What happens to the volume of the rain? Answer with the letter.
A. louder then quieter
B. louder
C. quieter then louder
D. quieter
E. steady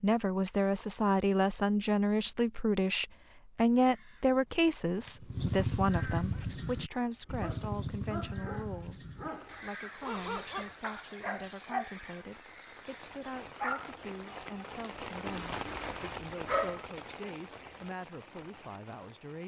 A.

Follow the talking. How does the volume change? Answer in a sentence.
The volume of the talking goes down.